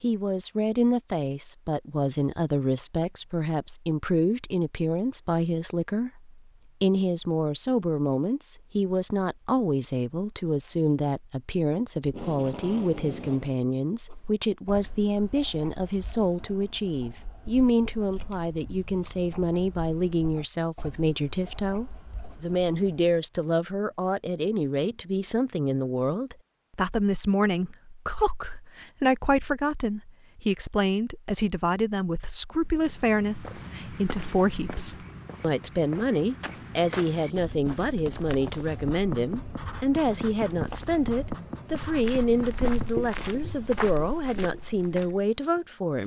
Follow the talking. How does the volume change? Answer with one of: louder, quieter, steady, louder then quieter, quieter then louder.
steady.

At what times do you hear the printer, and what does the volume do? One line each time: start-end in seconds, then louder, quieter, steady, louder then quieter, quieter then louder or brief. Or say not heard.
not heard.